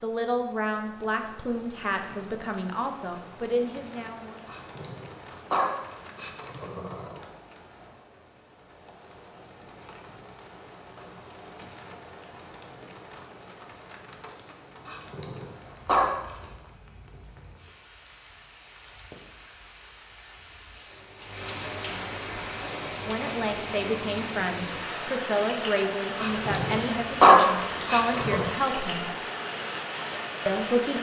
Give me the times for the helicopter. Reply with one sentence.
The helicopter can't be heard in this clip.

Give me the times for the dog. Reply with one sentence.
You can hear the dog from 4.5 to 7.2 s, from 14.8 to 16.4 s and from 26.1 to 28.4 s.